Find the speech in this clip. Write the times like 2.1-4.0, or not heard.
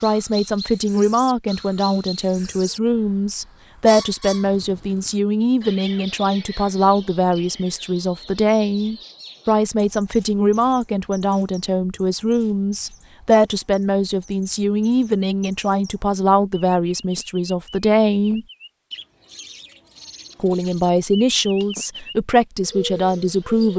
0.0-18.4, 20.4-23.7.